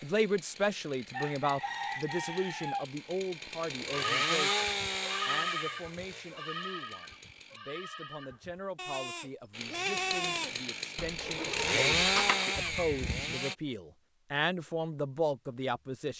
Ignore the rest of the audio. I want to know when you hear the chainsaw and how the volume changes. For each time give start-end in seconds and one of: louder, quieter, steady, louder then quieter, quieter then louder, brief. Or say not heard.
0.0-7.6 louder then quieter
9.5-13.6 louder then quieter.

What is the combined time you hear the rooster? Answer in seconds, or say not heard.
2 s.